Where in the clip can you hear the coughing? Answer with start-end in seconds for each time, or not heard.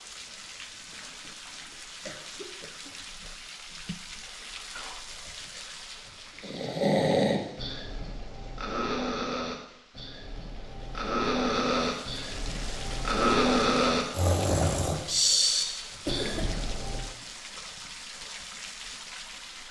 1.2-3.0, 16.1-16.6.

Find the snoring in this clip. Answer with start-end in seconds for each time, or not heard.
6.4-17.1.